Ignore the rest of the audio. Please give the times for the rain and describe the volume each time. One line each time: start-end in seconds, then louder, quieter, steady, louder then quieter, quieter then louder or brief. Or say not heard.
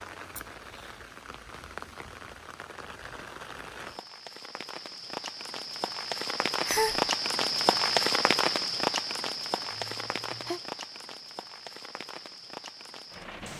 0.0-13.5 louder then quieter.